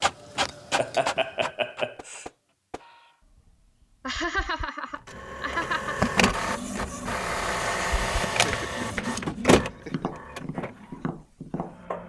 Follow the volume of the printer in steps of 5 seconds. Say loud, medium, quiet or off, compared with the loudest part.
medium, loud, quiet.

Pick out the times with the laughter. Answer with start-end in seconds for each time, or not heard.
0.3-2.2, 4.0-6.0, 8.4-10.1.